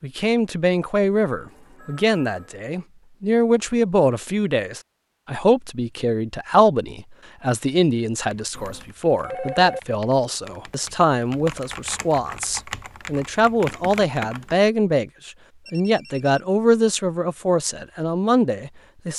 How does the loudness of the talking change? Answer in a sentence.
The volume of the talking stays about the same.